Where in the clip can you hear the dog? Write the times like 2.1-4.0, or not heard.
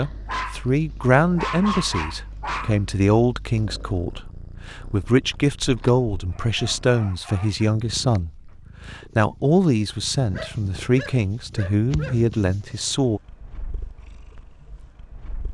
0.2-2.8, 5.3-7.7, 10.3-12.2.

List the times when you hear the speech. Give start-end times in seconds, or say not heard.
0.0-13.2.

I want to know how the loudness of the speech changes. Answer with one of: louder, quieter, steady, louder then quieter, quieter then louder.
steady.